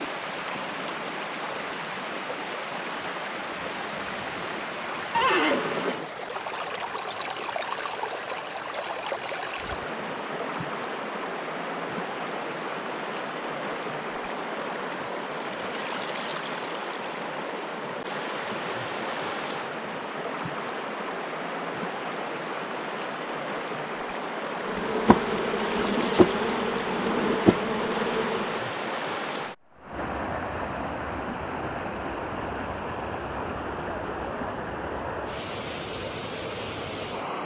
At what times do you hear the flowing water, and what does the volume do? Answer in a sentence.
You can hear the flowing water from 0.0 to 37.4 s, at a steady volume.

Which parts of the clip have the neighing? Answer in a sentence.
You can hear the neighing from 5.1 to 6.1 s.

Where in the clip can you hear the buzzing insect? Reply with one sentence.
The buzzing insect can be heard from 24.6 to 28.7 s.